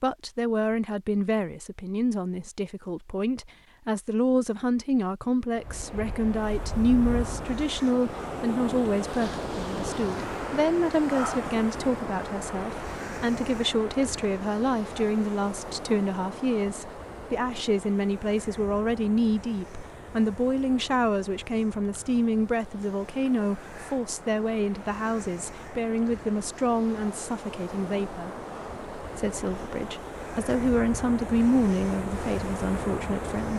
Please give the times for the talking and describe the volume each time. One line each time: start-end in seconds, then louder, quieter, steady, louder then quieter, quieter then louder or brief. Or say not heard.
0.0-28.3 steady
29.0-33.5 louder then quieter.